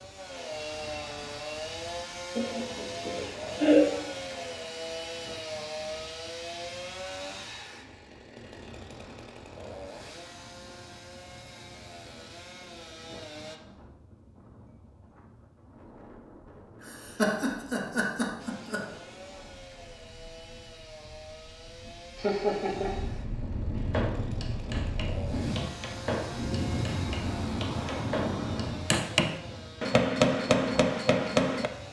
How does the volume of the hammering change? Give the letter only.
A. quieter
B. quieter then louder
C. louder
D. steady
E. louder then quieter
C.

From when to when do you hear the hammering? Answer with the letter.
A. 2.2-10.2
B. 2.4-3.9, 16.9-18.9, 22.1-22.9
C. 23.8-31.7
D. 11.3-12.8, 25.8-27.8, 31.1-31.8
C.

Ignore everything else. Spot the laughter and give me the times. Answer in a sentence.
You can hear the laughter from 2.4 to 3.9 s, from 16.9 to 18.9 s and from 22.1 to 22.9 s.